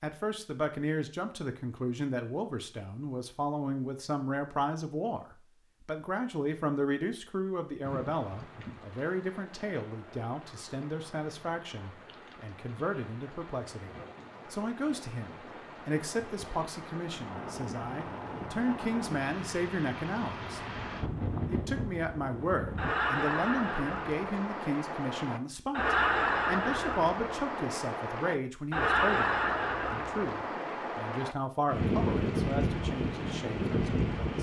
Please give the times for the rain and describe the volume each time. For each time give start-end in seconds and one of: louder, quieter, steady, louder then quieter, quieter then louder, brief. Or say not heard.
7.8-34.3 louder.